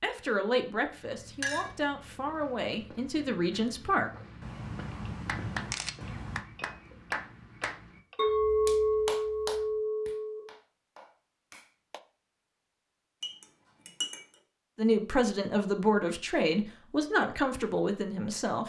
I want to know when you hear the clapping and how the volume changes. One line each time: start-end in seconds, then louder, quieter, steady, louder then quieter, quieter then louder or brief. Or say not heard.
5.0-12.0 quieter.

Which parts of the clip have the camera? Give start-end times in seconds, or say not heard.
4.4-6.4.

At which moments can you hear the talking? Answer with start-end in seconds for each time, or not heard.
0.0-4.1, 14.8-18.6.